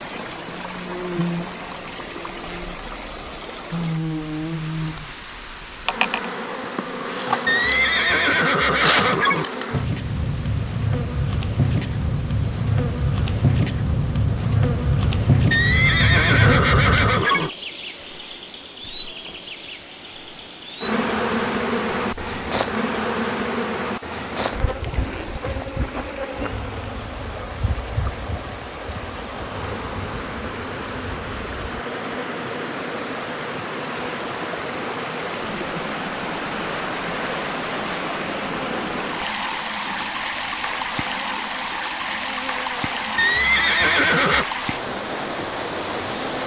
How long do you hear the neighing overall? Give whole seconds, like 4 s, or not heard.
5 s.